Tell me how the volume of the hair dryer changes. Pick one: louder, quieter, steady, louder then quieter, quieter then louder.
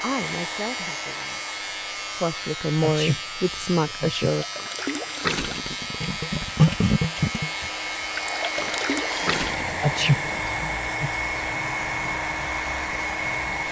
quieter then louder.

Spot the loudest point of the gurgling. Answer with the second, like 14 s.
7 s.